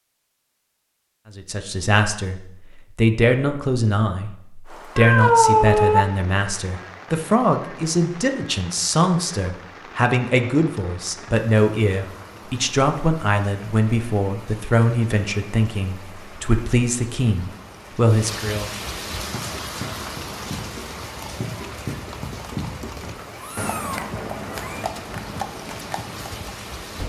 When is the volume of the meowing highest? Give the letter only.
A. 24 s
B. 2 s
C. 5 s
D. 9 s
C.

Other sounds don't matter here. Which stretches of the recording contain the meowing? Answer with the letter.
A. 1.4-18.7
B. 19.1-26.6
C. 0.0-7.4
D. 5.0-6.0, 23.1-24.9
D.